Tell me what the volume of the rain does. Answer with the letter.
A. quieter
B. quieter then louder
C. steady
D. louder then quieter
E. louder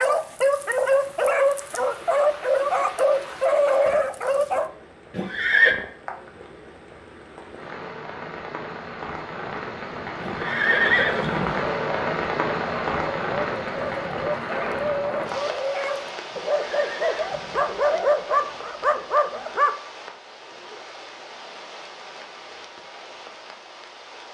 D.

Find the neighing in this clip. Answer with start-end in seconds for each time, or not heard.
5.1-5.8, 10.2-11.7, 16.3-17.7.